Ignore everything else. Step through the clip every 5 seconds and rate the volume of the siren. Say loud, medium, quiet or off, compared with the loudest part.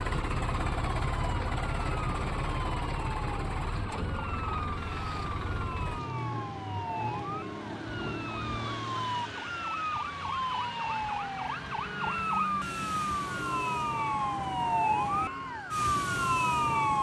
quiet, medium, loud, loud.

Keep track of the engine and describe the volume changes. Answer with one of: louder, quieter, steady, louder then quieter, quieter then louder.
quieter.